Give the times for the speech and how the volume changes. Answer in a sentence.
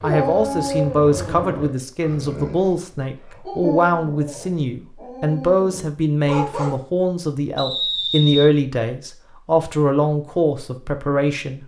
You can hear the speech from 0.0 to 11.6 s, at a steady volume.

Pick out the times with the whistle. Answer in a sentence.
You can hear the whistle from 7.5 to 8.4 s.